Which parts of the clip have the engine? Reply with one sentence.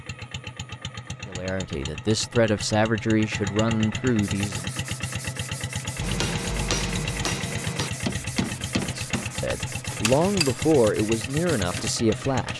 The engine can be heard from 0.0 to 12.5 s.